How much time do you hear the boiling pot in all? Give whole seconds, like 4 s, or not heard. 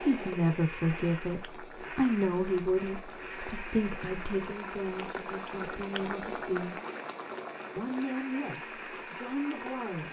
10 s.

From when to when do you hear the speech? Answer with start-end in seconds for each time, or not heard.
0.0-6.8, 7.8-10.0.